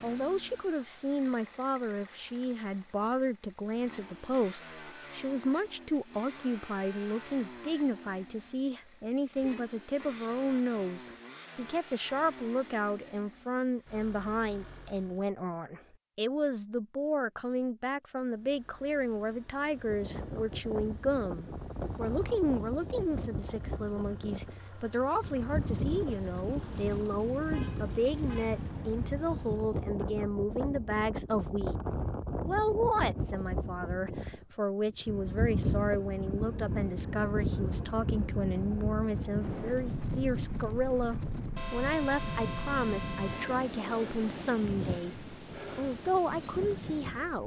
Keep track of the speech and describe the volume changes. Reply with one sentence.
The volume of the speech stays about the same.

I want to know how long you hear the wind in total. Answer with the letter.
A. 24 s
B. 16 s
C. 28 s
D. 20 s
C.